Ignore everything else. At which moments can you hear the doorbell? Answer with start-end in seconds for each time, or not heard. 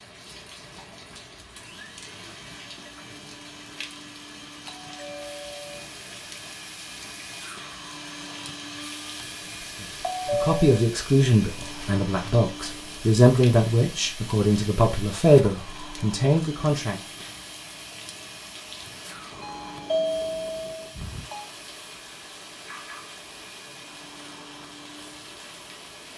4.7-5.8, 10.0-10.8, 19.4-21.4.